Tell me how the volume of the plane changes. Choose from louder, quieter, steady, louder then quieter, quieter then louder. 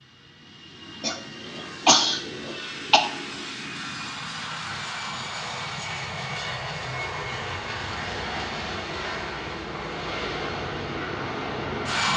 louder.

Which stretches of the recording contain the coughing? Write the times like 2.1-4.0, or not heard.
1.0-3.0.